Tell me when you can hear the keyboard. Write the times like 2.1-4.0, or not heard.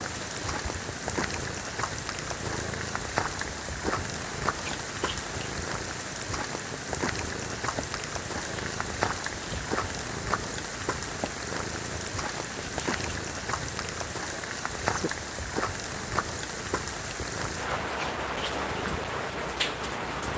not heard.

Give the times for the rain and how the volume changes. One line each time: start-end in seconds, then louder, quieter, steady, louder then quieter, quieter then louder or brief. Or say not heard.
0.0-20.3 steady.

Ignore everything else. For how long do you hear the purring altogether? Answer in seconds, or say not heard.
20 s.